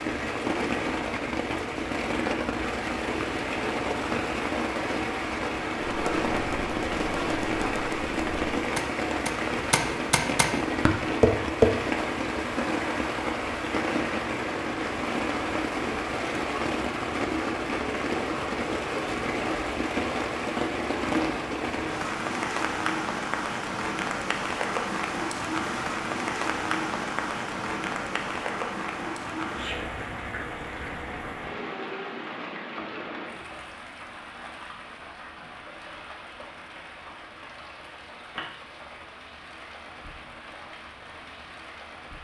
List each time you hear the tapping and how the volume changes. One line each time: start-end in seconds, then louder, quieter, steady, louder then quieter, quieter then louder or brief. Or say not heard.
5.8-11.7 louder.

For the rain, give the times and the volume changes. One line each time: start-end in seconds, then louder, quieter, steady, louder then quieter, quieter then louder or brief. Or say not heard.
0.0-42.1 quieter.